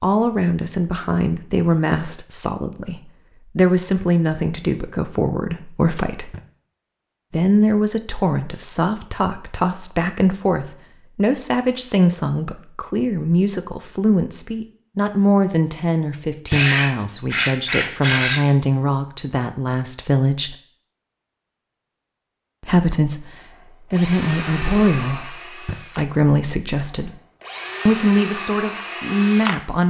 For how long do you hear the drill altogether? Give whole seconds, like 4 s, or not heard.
6 s.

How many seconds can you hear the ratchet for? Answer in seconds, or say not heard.
2 s.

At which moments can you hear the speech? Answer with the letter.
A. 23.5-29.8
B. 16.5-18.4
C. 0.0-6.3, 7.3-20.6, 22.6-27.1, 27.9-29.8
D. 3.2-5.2
C.